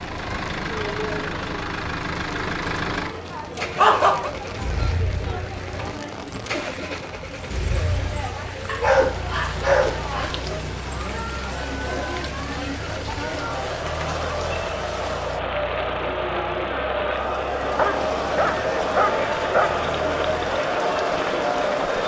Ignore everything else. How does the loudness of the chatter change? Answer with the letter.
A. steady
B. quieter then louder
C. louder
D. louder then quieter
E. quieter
C.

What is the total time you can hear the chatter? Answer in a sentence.
The chatter can be heard for 22 seconds in total.